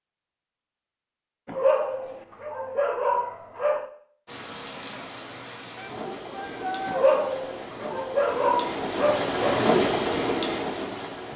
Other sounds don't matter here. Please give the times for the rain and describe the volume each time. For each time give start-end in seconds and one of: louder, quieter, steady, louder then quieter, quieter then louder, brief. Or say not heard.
4.2-11.3 louder.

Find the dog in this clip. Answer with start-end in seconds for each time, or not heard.
1.4-3.9, 6.8-9.7.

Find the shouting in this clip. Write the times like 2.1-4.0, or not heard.
5.8-7.0.